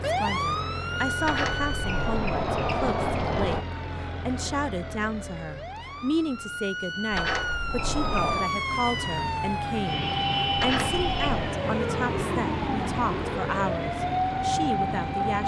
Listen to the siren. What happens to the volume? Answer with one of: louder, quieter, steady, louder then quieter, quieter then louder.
quieter then louder.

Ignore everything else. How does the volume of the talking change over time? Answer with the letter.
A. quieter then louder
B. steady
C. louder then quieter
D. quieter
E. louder
B.